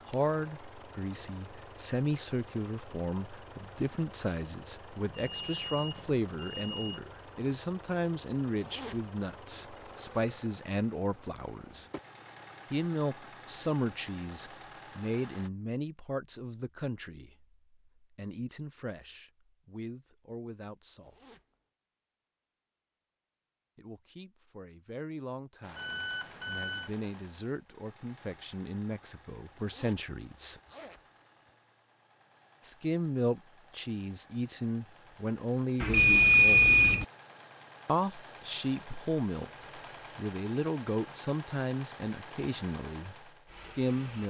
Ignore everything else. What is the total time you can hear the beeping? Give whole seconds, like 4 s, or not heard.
4 s.